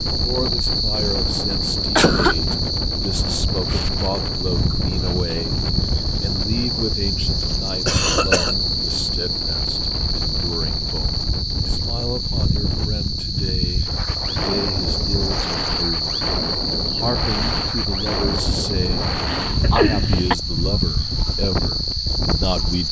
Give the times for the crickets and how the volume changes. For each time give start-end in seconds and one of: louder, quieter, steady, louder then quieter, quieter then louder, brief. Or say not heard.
0.0-22.8 steady.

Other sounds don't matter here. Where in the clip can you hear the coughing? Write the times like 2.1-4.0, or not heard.
1.9-2.5, 7.8-8.6, 19.3-20.4.